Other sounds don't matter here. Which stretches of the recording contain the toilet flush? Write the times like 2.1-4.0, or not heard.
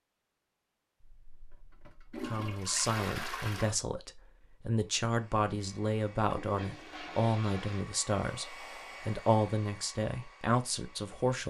1.0-3.8, 6.2-7.8.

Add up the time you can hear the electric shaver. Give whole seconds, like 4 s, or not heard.
not heard.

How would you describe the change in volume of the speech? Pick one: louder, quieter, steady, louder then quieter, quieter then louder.
steady.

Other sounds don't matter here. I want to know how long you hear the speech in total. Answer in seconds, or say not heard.
9 s.